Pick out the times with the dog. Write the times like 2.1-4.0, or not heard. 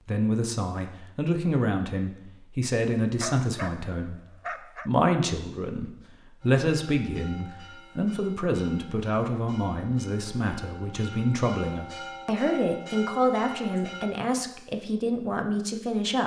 3.2-4.9.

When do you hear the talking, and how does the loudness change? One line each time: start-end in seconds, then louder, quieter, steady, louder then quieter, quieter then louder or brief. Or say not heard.
0.1-16.2 steady.